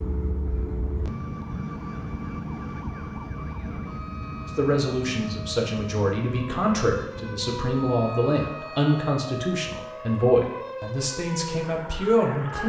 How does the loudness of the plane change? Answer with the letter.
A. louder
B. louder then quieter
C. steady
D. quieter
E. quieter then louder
D.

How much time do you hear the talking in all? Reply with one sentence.
The talking can be heard for 8 seconds in total.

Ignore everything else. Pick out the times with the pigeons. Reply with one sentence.
The pigeons can't be heard in this clip.